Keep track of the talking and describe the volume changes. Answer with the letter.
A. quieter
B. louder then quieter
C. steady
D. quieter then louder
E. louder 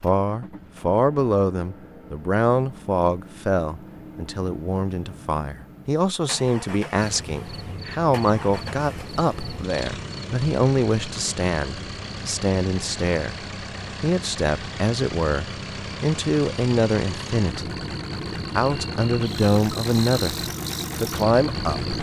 C.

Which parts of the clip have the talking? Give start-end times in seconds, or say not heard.
0.0-13.3, 14.0-17.8, 18.6-21.9.